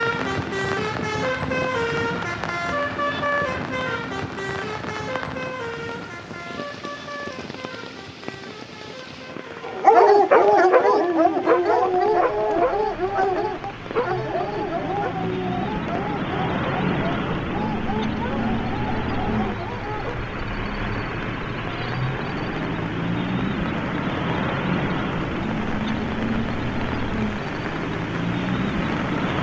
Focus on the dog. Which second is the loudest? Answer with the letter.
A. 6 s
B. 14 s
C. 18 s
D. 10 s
D.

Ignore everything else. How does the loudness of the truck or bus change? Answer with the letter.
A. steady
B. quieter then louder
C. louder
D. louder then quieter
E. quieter
B.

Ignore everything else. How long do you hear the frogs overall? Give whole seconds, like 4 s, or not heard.
not heard.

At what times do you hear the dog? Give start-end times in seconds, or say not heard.
9.6-20.2.